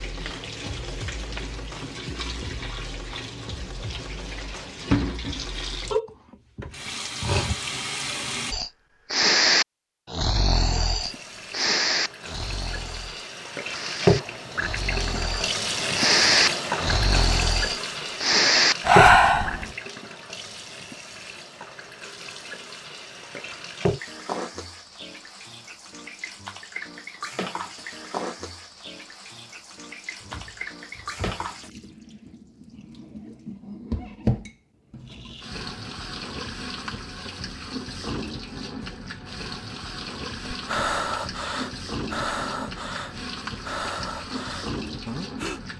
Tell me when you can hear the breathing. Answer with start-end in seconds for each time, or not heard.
8.5-19.8, 40.5-45.6.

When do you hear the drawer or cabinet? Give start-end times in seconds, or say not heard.
30.2-31.4.